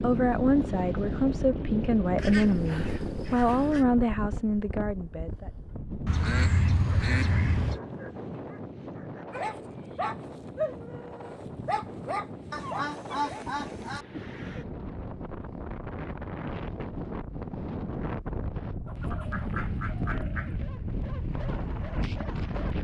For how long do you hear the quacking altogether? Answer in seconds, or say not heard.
7 s.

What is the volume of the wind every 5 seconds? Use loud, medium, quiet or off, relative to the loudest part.
loud, medium, medium, loud, loud.